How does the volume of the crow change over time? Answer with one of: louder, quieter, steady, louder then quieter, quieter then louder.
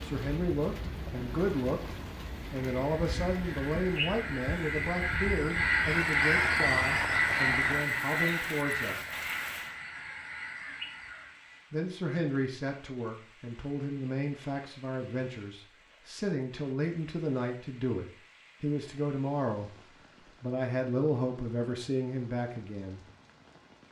louder then quieter.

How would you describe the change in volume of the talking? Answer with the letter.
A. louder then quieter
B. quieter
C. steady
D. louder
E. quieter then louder
C.